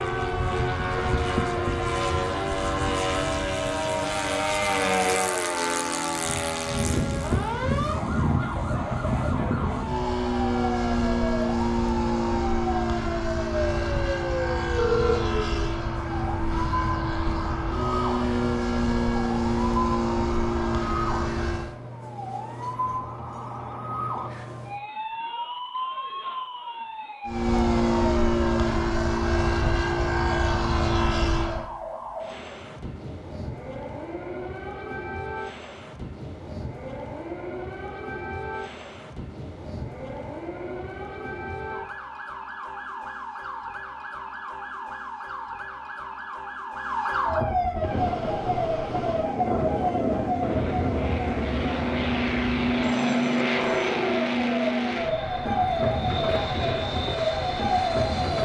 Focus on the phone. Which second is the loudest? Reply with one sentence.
The volume of the phone peaks at 15 seconds.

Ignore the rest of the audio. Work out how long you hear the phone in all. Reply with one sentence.
The phone can be heard for 2 seconds in total.